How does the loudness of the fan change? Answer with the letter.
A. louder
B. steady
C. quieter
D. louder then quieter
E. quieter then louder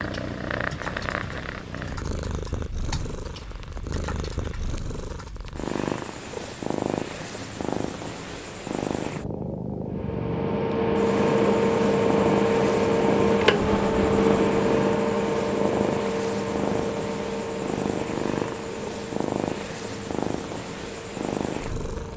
C.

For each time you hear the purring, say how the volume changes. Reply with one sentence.
The purring can be heard from 0.0 to 22.1 s, at a steady volume.